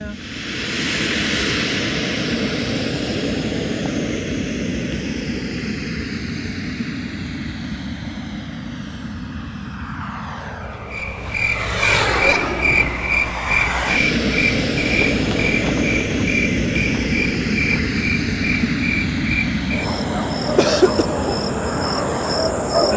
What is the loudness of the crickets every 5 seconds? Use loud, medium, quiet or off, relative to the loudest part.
off, off, loud, loud, loud.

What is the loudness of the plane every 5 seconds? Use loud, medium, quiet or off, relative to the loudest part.
loud, medium, loud, loud, medium.